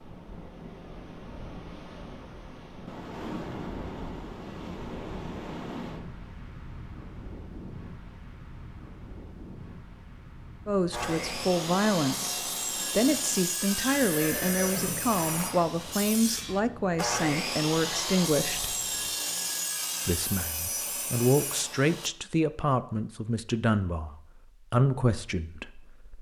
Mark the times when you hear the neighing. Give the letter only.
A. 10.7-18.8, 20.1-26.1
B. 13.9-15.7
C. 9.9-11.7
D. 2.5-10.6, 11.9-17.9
B.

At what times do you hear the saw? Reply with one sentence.
The saw can be heard from 10.9 to 22.1 s.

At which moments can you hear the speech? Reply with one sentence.
You can hear the speech from 10.7 to 18.8 s and from 20.1 to 26.1 s.